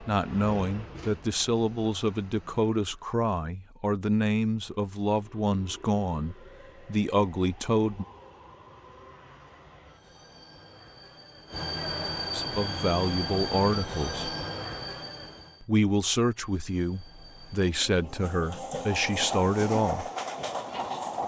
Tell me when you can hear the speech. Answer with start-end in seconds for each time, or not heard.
0.0-8.1, 12.3-14.3, 15.6-20.1.